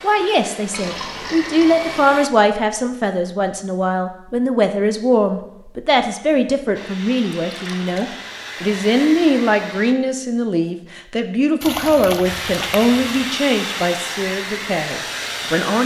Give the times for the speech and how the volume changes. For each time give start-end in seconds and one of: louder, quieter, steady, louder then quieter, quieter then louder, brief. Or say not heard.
0.0-15.8 steady.